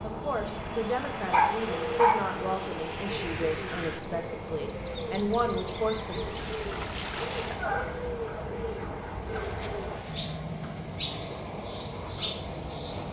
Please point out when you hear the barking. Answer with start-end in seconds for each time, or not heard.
1.3-2.2, 7.5-9.5.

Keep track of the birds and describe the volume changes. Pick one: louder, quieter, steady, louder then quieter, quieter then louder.
steady.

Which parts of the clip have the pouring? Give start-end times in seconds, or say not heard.
6.2-7.6.